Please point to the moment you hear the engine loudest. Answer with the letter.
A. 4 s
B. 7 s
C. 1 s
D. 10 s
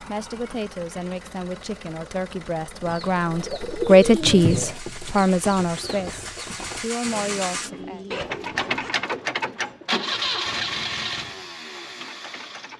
D.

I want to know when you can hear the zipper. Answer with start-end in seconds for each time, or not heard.
8.1-8.9.